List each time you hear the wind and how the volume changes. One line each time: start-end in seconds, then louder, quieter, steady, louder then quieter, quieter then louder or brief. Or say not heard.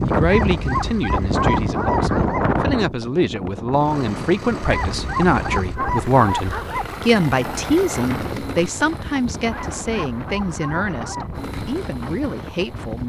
0.0-13.0 quieter.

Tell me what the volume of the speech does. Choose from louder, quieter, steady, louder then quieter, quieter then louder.
louder then quieter.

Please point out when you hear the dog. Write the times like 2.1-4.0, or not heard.
0.2-2.5, 4.7-7.0, 9.4-11.4.